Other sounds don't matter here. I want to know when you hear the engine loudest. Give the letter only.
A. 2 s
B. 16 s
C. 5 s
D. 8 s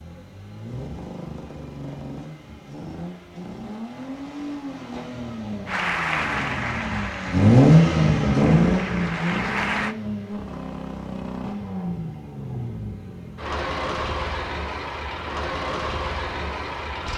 D.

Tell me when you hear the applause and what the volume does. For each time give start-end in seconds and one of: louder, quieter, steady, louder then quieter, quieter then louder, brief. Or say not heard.
5.7-9.9 quieter then louder.